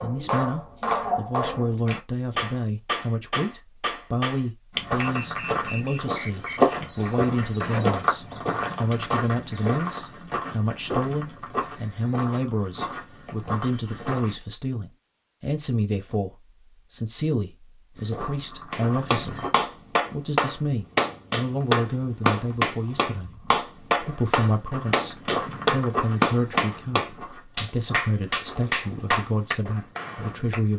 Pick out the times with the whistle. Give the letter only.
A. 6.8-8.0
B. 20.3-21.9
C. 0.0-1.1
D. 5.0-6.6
D.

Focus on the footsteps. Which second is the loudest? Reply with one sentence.
The volume of the footsteps peaks at 7 seconds.